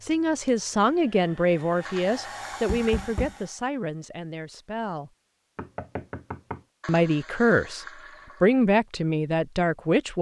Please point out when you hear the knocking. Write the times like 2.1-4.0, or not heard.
2.6-3.4, 5.5-6.6.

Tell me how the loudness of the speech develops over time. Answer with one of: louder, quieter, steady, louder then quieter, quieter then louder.
quieter then louder.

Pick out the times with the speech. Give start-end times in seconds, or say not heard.
0.0-5.1, 6.8-10.1.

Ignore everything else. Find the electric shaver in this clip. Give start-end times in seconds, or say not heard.
not heard.